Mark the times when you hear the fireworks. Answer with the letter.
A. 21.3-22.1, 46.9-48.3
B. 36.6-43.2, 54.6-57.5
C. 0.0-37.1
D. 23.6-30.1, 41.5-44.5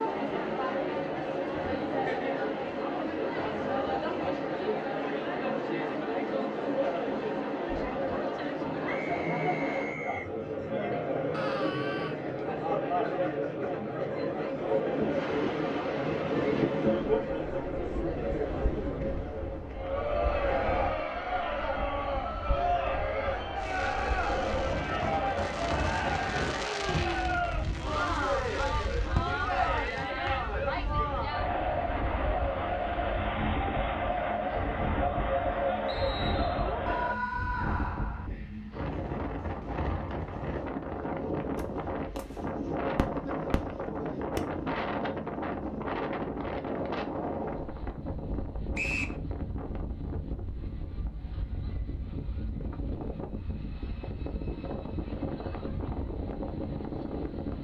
D.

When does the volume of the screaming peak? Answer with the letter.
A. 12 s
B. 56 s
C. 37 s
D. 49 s
C.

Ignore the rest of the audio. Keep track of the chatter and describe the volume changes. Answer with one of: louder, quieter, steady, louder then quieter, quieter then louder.
steady.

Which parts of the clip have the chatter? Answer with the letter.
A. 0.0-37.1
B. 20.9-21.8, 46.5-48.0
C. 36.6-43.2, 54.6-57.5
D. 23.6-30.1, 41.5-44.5
A.